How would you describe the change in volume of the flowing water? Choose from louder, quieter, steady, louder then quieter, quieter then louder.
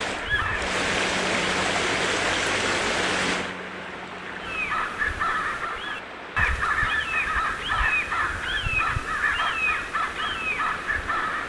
quieter.